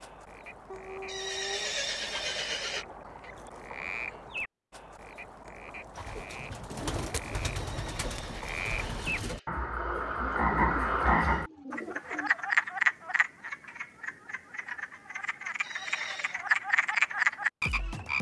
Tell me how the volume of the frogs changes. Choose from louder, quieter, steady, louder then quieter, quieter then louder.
louder.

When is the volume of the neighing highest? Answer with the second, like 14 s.
2 s.